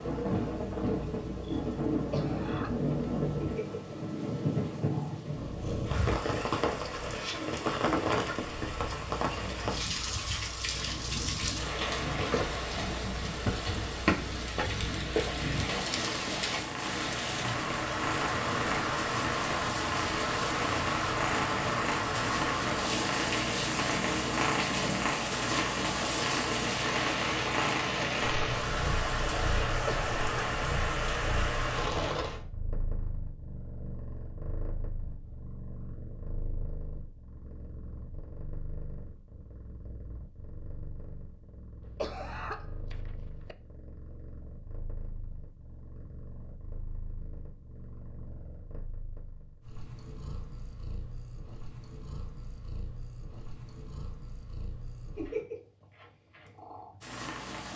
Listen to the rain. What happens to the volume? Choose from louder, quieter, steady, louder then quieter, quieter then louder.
steady.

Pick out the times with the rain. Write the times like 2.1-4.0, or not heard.
0.0-32.4.